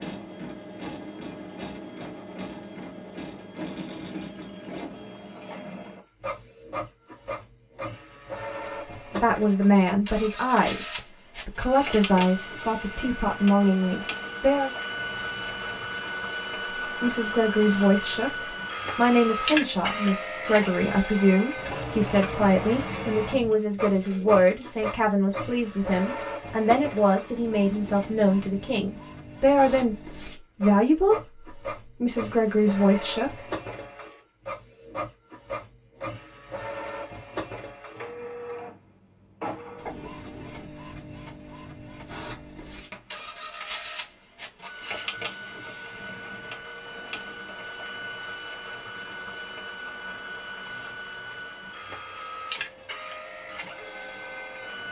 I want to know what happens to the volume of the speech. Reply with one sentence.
The loudness of the speech stays about the same.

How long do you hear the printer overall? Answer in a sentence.
The printer can be heard for 55 seconds in total.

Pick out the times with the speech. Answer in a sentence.
You can hear the speech from 9.1 to 14.7 s and from 16.9 to 33.5 s.